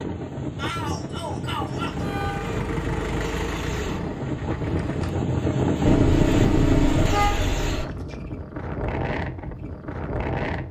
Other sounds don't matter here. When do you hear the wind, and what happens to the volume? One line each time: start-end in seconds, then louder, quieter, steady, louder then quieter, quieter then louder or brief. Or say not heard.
0.0-10.6 louder then quieter.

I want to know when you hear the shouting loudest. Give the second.
1 s.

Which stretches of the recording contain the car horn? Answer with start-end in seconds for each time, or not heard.
1.9-2.6, 5.8-7.8.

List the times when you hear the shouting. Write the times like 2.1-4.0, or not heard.
0.6-2.0.